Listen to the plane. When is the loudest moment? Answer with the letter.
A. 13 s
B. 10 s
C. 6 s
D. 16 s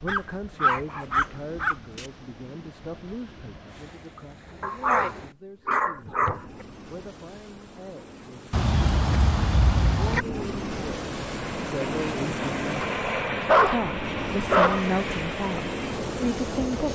A.